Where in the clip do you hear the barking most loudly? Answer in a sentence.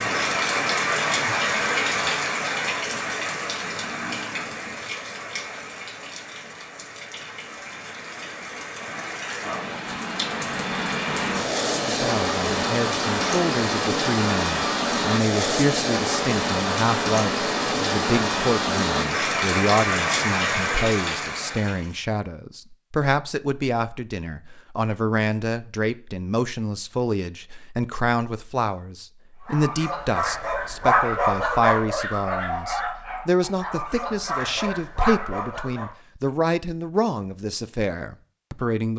The volume of the barking peaks at 31 seconds.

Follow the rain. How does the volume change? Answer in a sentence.
The loudness of the rain goes down, then up.